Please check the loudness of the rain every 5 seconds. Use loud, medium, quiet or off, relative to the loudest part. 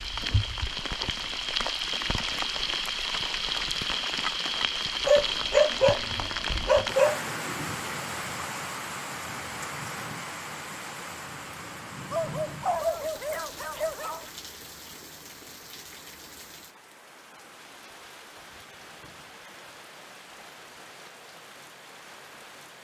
loud, loud, medium, quiet, quiet.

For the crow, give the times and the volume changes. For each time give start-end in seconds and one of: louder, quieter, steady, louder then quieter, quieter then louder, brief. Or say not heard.
not heard.